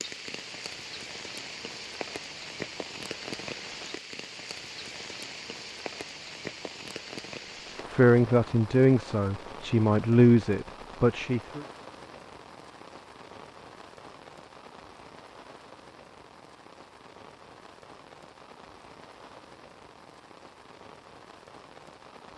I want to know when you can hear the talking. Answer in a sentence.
You can hear the talking from 7.9 to 11.7 s.